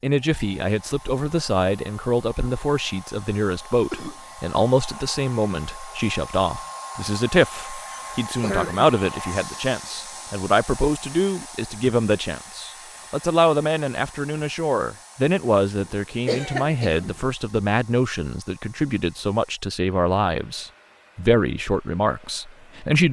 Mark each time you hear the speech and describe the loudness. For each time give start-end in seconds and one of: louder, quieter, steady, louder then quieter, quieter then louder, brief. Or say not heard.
0.0-23.0 steady.